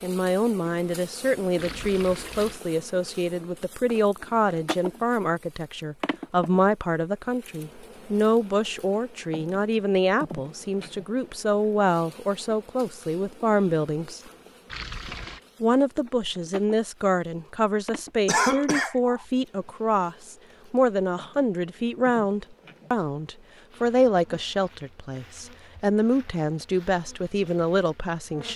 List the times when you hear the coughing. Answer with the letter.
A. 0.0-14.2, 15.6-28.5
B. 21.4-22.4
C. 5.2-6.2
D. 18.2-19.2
D.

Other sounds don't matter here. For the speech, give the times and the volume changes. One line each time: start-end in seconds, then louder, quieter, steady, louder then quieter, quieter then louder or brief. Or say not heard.
0.0-14.2 steady
15.6-28.5 steady.